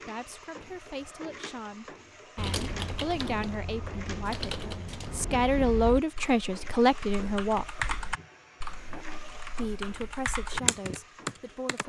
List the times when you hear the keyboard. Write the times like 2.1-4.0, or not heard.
2.4-11.8.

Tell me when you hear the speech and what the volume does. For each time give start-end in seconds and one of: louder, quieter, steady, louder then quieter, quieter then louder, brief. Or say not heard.
0.0-7.8 louder
9.6-11.8 brief.